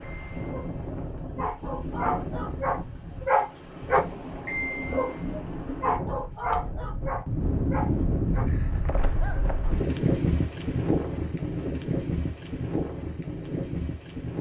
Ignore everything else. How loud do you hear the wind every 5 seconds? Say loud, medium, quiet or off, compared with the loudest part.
medium, loud, loud.